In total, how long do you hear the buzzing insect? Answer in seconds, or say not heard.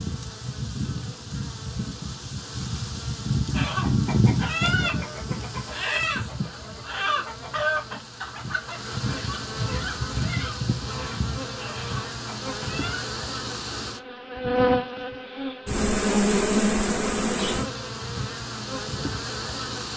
20 s.